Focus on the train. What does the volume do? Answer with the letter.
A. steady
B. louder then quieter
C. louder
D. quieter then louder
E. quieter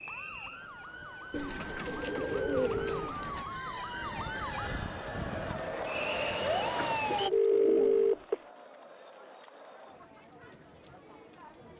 C.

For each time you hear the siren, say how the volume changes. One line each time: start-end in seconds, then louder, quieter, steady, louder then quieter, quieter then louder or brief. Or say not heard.
0.0-7.3 louder.